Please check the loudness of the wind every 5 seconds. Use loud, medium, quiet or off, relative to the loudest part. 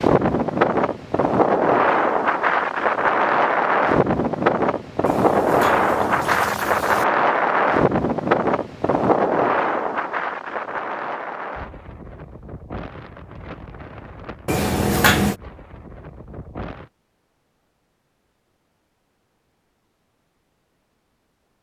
loud, loud, quiet, quiet, off.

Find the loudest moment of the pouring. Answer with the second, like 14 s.
15 s.